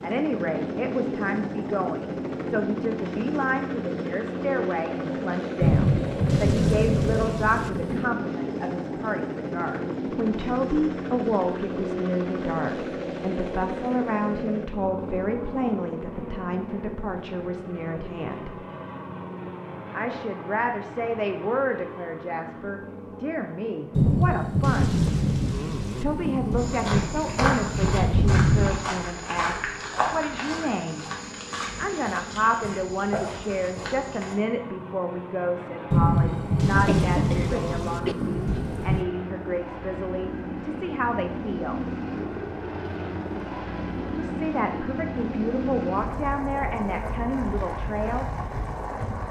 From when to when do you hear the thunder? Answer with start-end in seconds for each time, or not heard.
5.6-8.1, 23.9-28.9, 35.9-39.0.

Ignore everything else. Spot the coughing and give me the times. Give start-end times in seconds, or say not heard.
36.8-38.1.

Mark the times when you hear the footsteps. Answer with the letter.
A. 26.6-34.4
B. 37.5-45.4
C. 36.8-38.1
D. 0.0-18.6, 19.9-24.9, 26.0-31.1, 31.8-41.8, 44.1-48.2
A.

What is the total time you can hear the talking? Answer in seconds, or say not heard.
43 s.